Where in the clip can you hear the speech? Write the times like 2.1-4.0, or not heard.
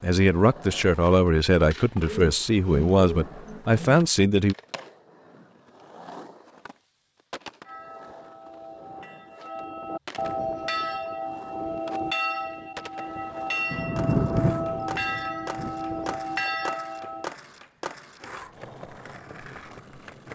0.0-4.5.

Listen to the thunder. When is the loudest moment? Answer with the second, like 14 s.
14 s.